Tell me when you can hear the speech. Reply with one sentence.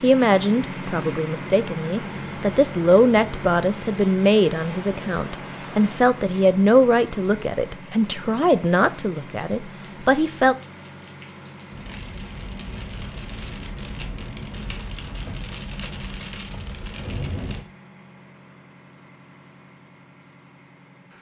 The speech can be heard from 0.0 to 10.6 s.